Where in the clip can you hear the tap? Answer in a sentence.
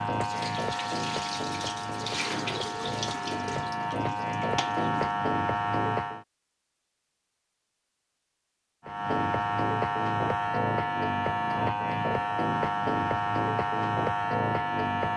You can hear the tap from 0.0 to 5.2 s.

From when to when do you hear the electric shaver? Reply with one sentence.
The electric shaver can be heard from 0.0 to 6.2 s and from 8.8 to 15.1 s.